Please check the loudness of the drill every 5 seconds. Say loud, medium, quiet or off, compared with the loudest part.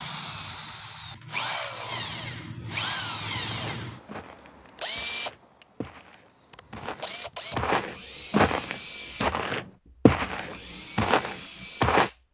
loud, loud, medium.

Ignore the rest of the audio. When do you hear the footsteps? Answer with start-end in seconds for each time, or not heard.
3.5-12.1.